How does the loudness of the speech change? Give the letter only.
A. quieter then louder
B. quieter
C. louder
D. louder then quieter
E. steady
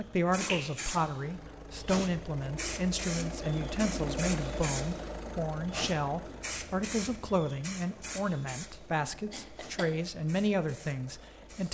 E.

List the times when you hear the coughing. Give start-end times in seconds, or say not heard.
0.4-0.9, 9.3-10.1.